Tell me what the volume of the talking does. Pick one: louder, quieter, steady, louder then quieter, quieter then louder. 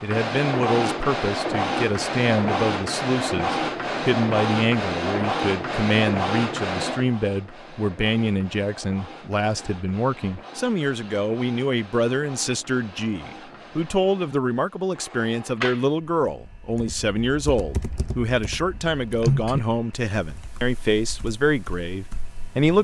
steady.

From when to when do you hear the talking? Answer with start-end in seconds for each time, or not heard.
0.0-22.8.